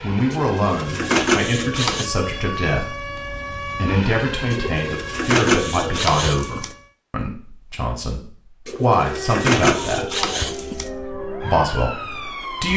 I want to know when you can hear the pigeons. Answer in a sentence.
The pigeons can be heard from 0.3 to 2.0 s, from 4.5 to 6.7 s and from 8.7 to 10.9 s.